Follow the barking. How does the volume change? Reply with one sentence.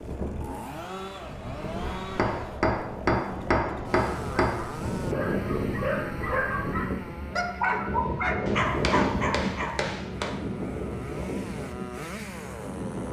The loudness of the barking stays about the same.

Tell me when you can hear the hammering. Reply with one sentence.
You can hear the hammering from 1.9 to 4.6 s and from 8.4 to 10.3 s.